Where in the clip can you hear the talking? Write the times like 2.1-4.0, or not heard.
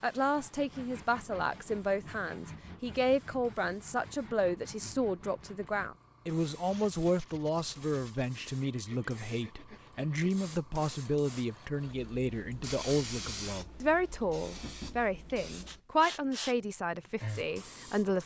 0.0-18.2.